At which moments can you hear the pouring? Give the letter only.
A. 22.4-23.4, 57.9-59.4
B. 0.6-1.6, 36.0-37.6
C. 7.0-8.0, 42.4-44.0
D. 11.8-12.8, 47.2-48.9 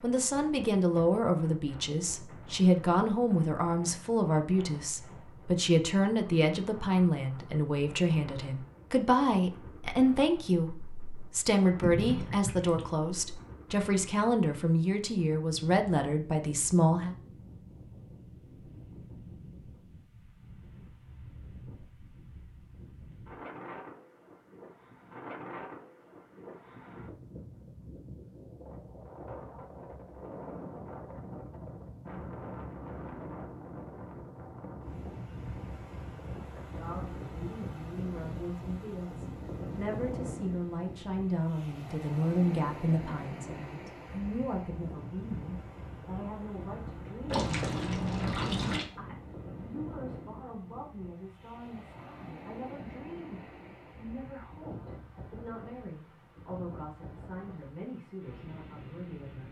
D.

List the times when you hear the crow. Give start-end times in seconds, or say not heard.
not heard.